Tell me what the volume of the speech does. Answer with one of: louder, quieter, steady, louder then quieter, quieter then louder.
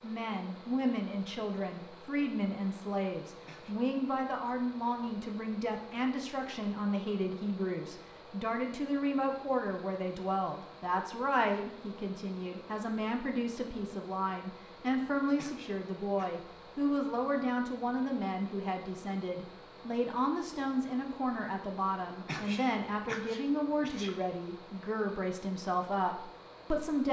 steady.